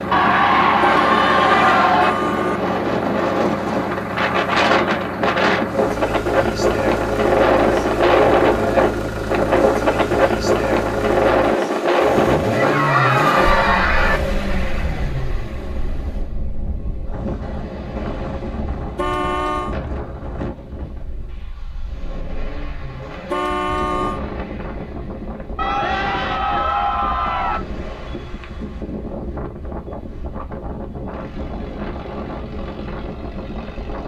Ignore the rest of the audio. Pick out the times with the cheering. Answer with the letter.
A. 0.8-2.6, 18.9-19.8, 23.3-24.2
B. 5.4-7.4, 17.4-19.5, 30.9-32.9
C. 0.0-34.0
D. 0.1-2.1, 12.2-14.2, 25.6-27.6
D.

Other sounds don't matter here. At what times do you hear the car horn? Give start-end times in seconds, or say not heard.
0.8-2.6, 18.9-19.8, 23.3-24.2.